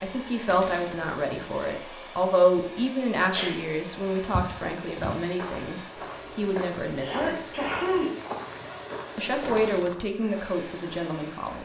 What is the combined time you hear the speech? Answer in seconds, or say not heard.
10 s.